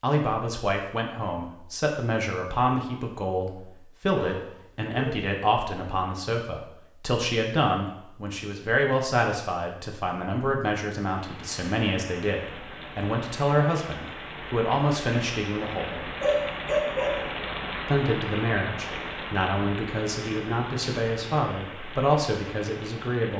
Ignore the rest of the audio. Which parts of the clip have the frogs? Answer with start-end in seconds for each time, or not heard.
not heard.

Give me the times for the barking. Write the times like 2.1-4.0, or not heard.
4.1-5.2, 16.2-17.4.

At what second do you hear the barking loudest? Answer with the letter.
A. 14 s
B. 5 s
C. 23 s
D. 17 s
D.